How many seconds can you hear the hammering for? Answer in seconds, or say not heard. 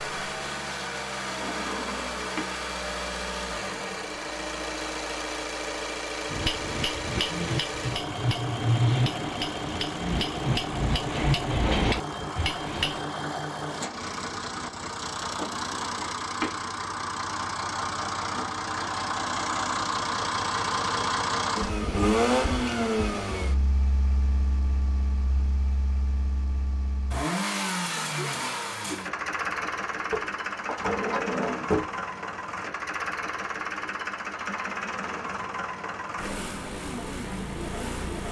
7 s.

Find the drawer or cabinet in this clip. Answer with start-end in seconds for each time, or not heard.
1.2-2.5, 15.5-16.6, 30.1-31.9.